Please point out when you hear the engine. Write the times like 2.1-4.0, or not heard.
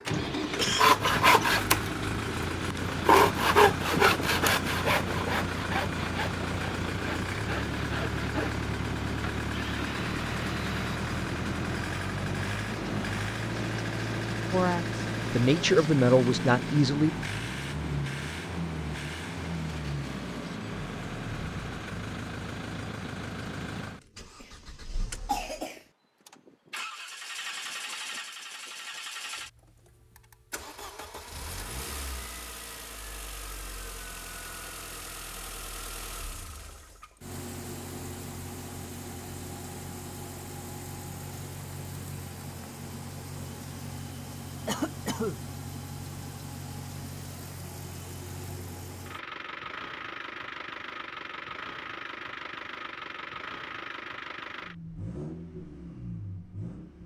0.0-57.0.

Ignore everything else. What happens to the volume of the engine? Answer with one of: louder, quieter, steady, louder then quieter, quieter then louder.
quieter.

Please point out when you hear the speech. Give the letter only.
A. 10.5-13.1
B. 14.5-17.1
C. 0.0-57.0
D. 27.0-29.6
B.